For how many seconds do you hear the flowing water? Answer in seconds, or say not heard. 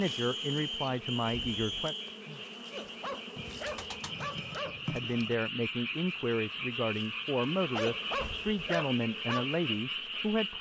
not heard.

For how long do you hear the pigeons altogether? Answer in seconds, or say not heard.
2 s.